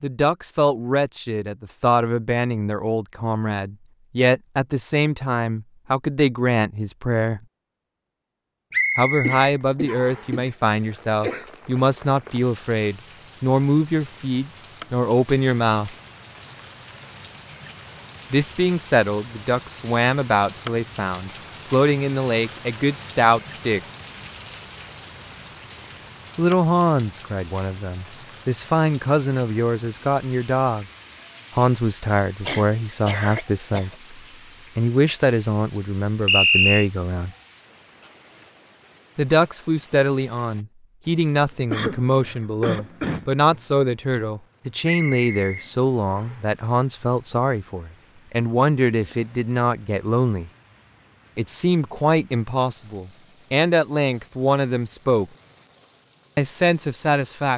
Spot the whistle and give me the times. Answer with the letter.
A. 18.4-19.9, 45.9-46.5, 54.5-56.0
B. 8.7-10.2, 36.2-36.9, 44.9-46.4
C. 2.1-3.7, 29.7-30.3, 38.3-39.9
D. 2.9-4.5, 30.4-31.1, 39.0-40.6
B.